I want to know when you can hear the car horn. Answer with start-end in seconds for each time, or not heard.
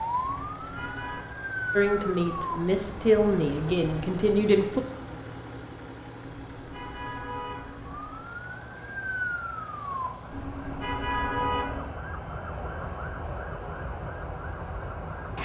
0.2-1.2, 6.2-8.2, 10.3-11.9.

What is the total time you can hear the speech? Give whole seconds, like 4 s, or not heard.
3 s.